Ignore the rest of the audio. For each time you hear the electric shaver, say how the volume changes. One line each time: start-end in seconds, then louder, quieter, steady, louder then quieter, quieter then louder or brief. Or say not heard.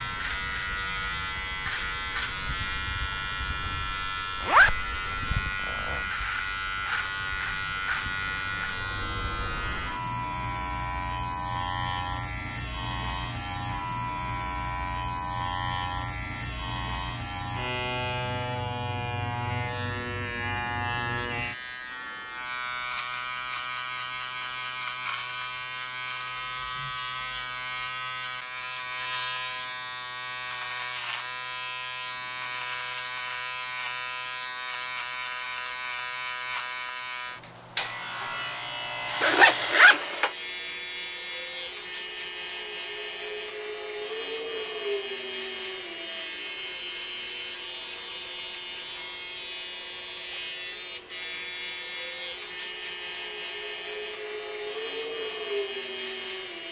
0.0-56.6 steady.